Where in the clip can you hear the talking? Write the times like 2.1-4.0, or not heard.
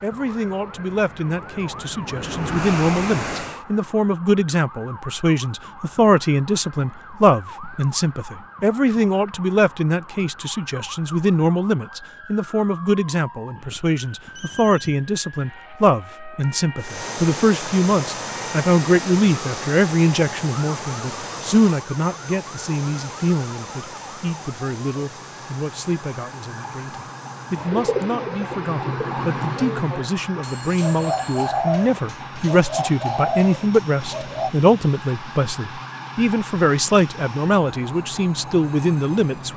0.0-39.5.